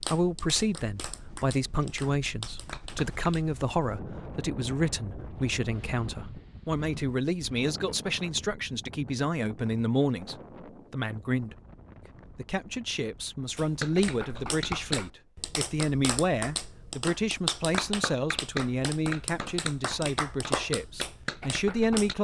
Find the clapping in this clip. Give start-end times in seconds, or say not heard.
0.0-3.5, 13.6-22.1.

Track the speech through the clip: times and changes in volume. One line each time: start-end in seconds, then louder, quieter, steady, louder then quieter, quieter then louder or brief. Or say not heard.
0.1-11.6 steady
12.3-22.1 steady.